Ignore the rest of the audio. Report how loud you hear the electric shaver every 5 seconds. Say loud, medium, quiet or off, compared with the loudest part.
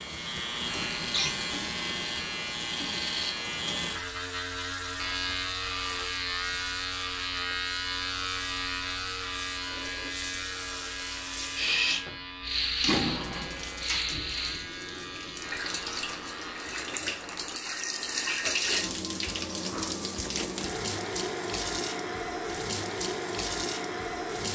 loud, loud, medium, medium, off.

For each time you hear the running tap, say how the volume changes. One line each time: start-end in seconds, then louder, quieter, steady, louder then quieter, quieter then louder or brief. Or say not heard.
0.0-24.5 louder.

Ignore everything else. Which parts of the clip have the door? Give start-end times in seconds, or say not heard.
not heard.